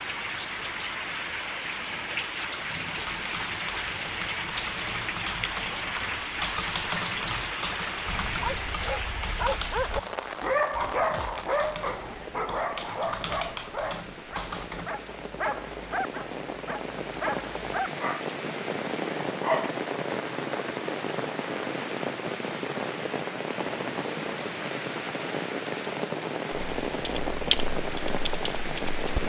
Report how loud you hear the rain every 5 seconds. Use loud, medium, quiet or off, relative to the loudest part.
loud, loud, medium, loud, loud, loud.